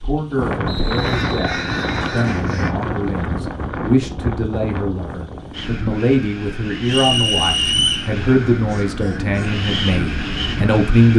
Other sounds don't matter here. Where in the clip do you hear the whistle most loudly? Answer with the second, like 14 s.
8 s.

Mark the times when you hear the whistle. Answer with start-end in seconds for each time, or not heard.
0.7-2.5, 6.8-8.1.